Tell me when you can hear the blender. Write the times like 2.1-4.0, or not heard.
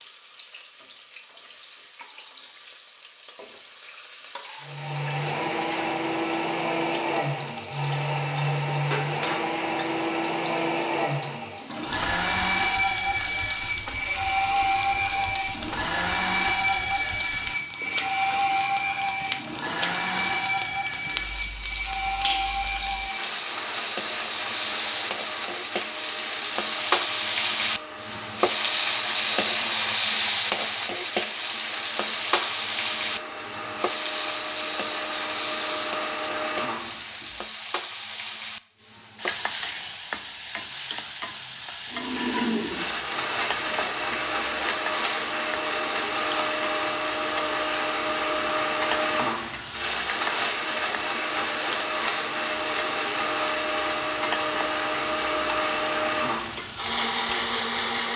4.6-37.4, 41.9-58.1.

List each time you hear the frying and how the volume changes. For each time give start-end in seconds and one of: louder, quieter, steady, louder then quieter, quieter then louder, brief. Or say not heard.
0.0-58.1 louder then quieter.